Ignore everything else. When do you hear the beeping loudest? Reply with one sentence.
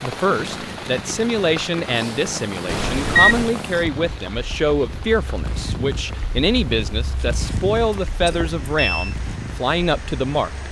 The volume of the beeping peaks at 3 seconds.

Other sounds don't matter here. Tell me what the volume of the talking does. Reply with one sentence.
The loudness of the talking stays about the same.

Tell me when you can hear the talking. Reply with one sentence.
You can hear the talking from 0.0 to 10.6 s.